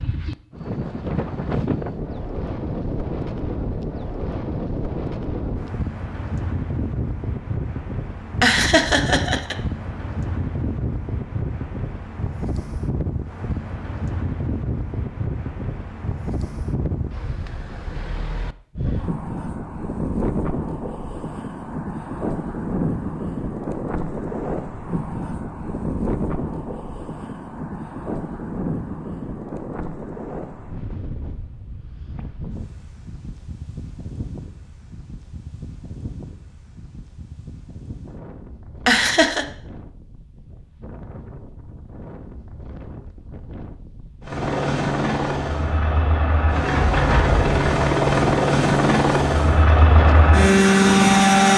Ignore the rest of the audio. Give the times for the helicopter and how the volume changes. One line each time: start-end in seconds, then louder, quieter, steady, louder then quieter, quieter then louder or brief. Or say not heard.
44.2-51.5 louder.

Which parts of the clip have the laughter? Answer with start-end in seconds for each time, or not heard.
8.4-9.6, 38.9-39.5.